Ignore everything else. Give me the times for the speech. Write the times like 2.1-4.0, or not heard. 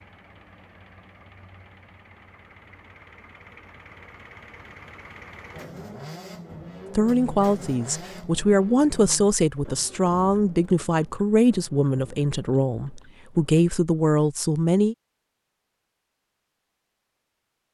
7.0-14.9.